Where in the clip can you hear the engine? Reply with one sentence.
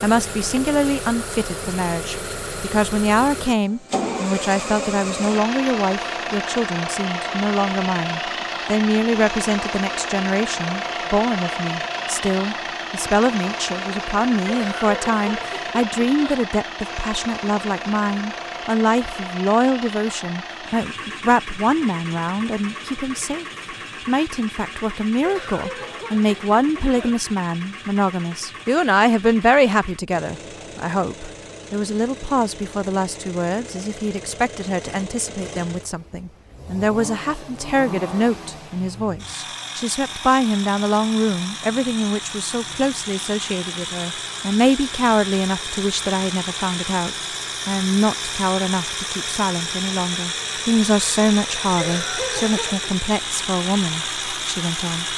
The engine can be heard from 0.0 to 55.1 s.